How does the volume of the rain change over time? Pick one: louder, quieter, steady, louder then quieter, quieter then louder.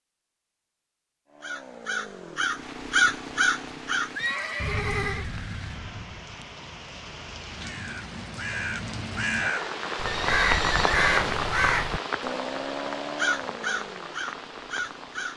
louder then quieter.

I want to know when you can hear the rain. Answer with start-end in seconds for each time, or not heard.
2.5-15.3.